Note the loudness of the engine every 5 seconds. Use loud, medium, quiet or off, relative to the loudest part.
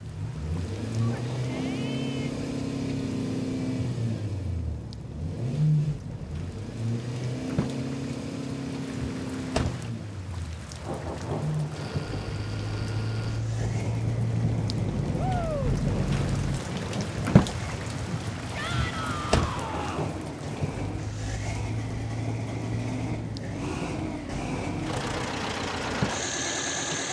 loud, loud, medium, medium, medium, loud.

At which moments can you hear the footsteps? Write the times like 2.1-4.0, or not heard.
not heard.